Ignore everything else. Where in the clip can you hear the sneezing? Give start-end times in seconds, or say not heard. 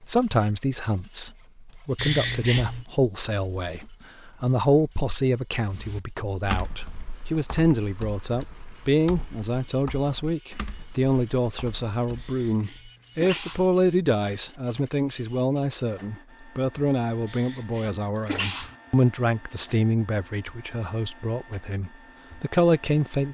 1.9-2.9, 12.2-13.7, 17.2-18.8.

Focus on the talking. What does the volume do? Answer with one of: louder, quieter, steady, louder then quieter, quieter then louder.
steady.